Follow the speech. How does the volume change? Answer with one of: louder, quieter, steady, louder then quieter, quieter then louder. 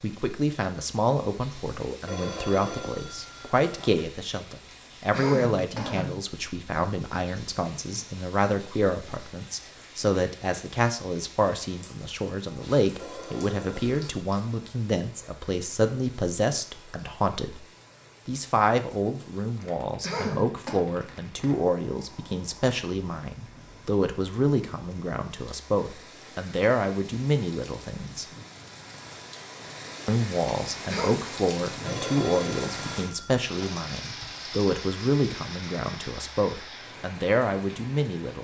steady.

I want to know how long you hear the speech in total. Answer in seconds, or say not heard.
36 s.